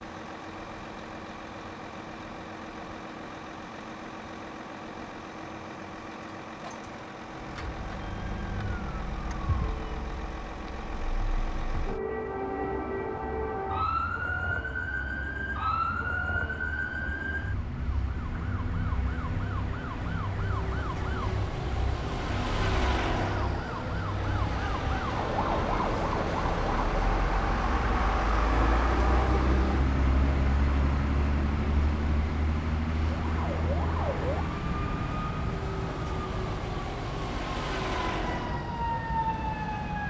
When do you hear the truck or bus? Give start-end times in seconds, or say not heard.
0.0-40.0.